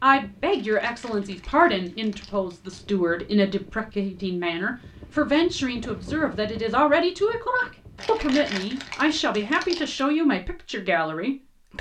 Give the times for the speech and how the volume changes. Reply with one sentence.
You can hear the speech from 0.0 to 11.7 s, at a steady volume.